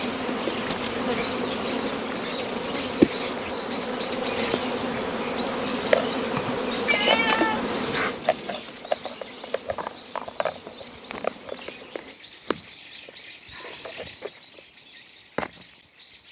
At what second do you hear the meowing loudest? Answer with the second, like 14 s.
7 s.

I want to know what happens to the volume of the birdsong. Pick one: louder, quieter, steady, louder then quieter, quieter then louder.
louder then quieter.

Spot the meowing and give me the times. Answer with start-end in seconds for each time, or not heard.
6.8-8.6.